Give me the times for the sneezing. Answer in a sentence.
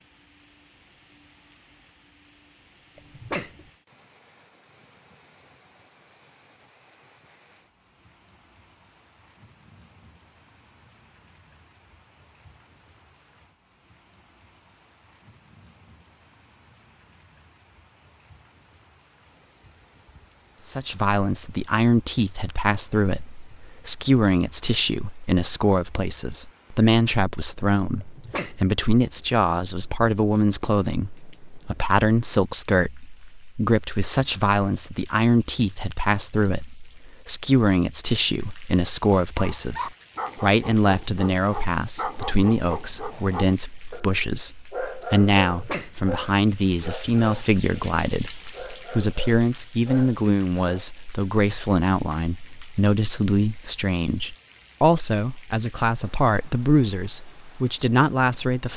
You can hear the sneezing from 3.0 to 3.6 s, from 28.0 to 28.6 s and from 45.5 to 46.0 s.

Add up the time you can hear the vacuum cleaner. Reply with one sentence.
You can't hear the vacuum cleaner here.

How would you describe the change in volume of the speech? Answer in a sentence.
The loudness of the speech stays about the same.